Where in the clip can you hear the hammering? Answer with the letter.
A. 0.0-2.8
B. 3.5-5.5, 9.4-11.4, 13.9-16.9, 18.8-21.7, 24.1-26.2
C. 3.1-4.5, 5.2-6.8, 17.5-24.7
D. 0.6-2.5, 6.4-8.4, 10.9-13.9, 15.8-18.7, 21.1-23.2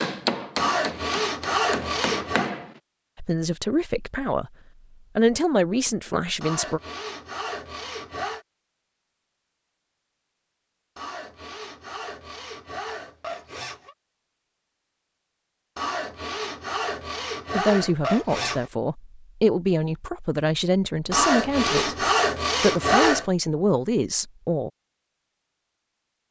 A.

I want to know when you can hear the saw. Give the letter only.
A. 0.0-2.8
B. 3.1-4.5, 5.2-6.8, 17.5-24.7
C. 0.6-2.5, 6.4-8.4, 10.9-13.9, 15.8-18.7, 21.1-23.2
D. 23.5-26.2
C.